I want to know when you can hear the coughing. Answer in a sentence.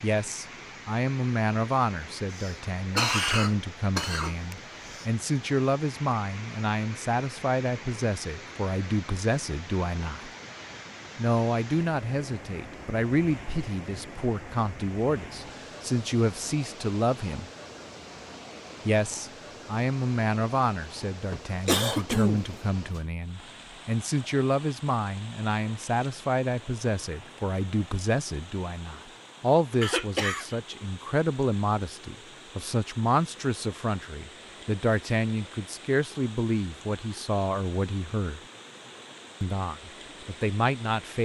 The coughing can be heard from 2.3 to 5.0 s, from 21.3 to 23.0 s and from 29.8 to 30.6 s.